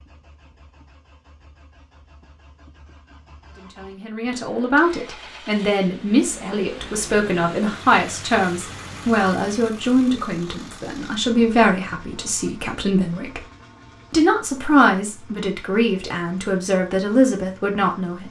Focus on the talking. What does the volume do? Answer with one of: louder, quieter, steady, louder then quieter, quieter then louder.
steady.